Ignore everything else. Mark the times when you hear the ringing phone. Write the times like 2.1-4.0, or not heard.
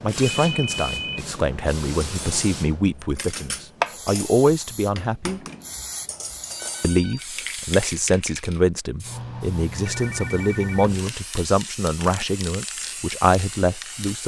0.2-1.2, 6.4-7.2, 9.8-11.2.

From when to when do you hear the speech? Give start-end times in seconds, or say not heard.
0.0-5.4, 6.8-14.2.